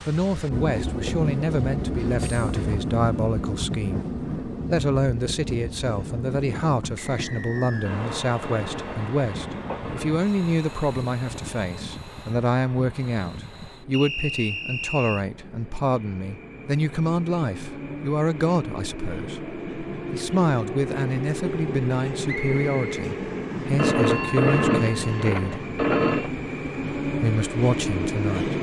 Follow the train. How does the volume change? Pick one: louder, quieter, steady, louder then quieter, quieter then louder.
quieter then louder.